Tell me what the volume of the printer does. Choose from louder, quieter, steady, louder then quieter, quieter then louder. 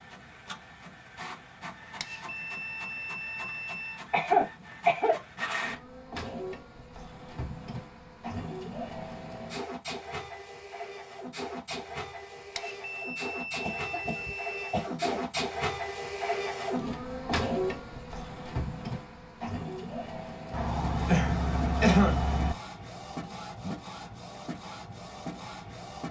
louder then quieter.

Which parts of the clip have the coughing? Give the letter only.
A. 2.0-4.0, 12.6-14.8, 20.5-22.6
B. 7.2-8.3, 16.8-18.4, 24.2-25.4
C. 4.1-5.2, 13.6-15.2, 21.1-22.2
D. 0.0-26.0
C.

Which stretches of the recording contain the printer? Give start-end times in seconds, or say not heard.
0.0-26.0.